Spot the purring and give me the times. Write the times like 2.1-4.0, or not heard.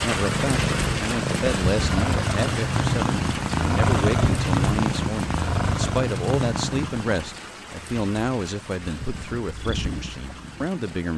0.0-7.3, 9.3-11.1.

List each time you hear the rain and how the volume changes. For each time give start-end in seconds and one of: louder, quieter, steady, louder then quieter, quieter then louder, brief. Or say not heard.
0.0-11.1 quieter.